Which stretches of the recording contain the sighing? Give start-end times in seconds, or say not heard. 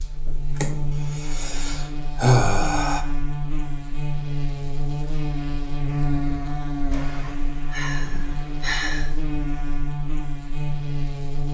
0.6-3.0, 6.9-9.1.